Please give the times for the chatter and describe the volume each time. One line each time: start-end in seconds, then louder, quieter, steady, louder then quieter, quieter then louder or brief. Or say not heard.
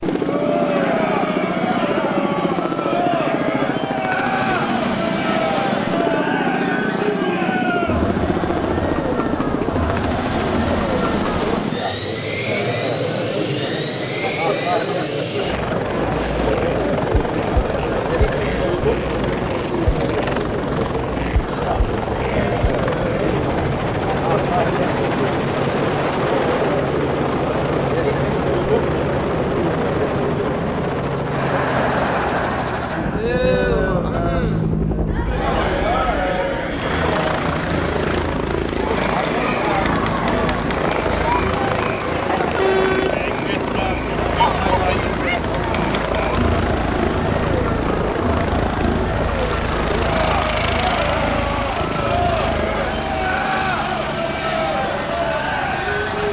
0.1-56.2 steady.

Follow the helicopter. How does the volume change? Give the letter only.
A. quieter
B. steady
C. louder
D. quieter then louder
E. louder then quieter
B.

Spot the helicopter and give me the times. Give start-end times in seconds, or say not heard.
0.0-56.2.